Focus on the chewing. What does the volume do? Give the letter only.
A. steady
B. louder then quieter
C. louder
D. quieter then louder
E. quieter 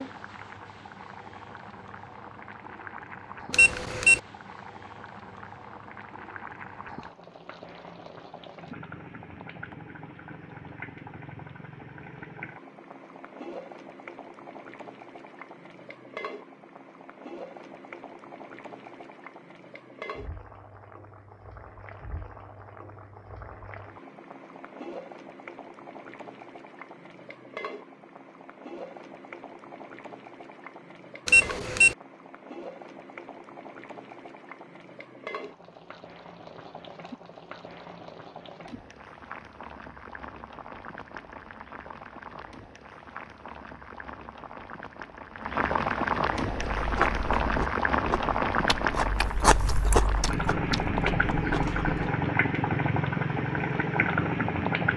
B.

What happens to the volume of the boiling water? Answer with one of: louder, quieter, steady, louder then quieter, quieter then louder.
louder.